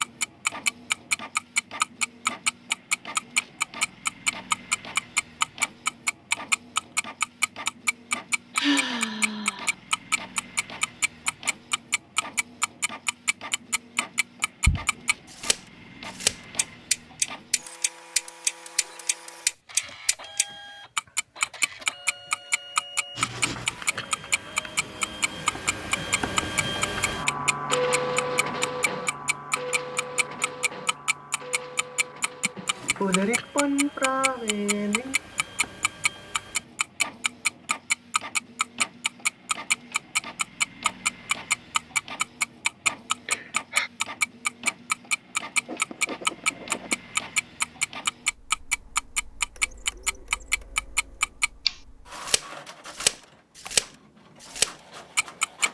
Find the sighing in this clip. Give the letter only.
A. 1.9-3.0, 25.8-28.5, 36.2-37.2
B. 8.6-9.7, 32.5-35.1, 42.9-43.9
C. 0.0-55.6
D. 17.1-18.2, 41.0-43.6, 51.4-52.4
B.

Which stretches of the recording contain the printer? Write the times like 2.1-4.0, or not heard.
0.0-55.6.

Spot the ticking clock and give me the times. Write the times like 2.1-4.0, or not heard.
0.0-55.6.